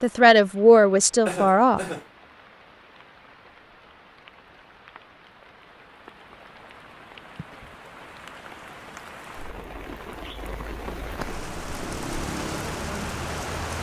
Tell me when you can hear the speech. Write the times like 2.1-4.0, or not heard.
0.0-1.9.